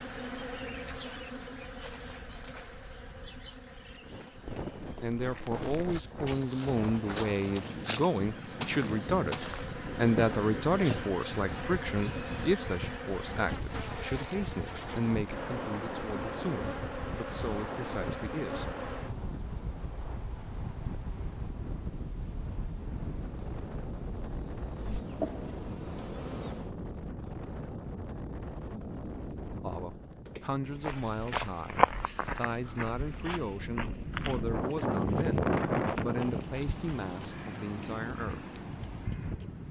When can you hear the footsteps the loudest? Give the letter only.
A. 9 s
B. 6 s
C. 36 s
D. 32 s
D.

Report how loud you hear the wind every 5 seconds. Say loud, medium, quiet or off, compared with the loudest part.
quiet, medium, medium, medium, medium, medium, medium, loud.